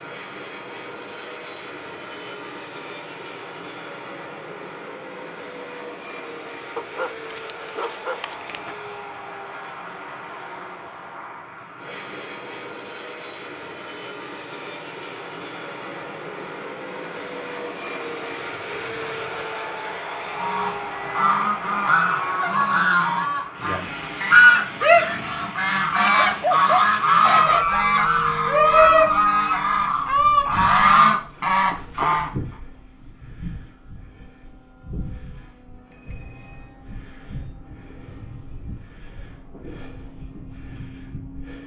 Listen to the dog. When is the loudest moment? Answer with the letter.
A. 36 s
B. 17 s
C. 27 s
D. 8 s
C.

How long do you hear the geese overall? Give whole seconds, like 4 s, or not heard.
12 s.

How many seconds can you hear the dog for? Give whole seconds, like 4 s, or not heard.
4 s.